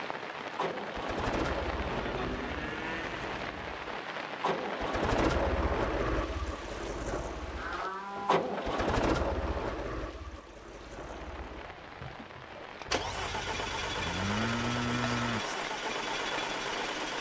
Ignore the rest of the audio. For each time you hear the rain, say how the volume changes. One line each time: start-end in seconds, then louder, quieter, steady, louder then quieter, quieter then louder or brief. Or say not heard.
0.0-17.1 quieter then louder.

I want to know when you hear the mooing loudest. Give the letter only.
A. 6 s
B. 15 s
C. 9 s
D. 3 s
B.